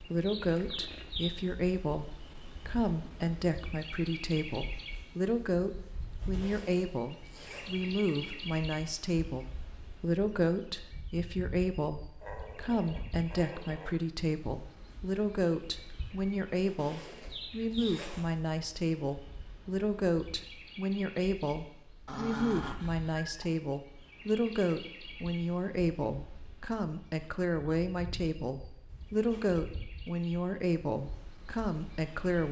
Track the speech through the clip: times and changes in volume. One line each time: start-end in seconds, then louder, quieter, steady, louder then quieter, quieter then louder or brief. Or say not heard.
0.0-32.4 steady.